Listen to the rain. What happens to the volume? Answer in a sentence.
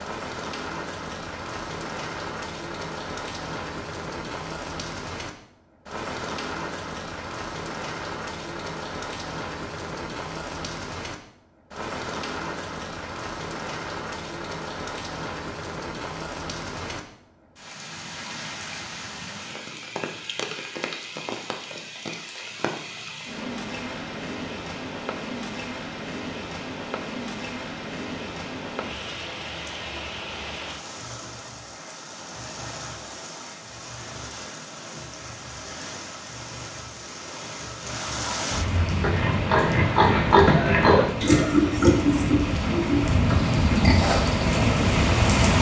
The loudness of the rain goes up.